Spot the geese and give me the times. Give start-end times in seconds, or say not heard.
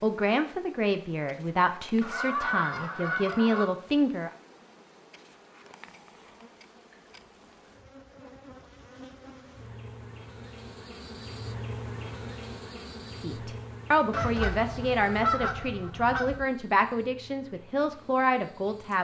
2.0-3.6, 14.1-16.4.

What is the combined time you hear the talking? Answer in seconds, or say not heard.
10 s.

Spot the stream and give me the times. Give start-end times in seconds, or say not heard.
not heard.